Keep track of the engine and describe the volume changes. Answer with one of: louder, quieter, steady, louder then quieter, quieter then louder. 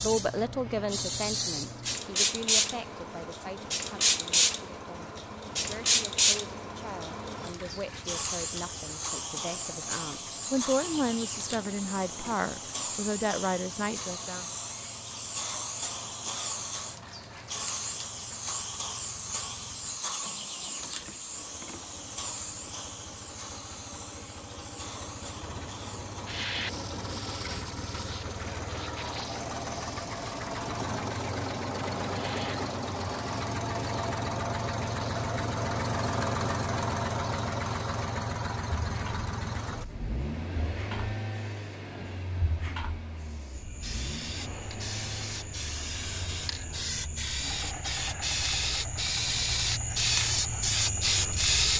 louder then quieter.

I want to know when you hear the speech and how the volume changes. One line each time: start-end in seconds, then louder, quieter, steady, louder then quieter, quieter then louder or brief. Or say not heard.
0.0-14.4 quieter then louder.